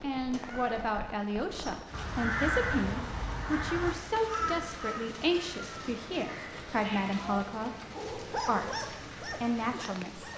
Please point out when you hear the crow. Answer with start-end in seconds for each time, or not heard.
1.4-6.7.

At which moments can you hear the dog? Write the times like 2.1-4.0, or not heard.
7.9-10.3.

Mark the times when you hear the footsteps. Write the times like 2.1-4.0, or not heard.
not heard.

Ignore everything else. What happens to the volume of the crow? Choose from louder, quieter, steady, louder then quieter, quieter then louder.
quieter.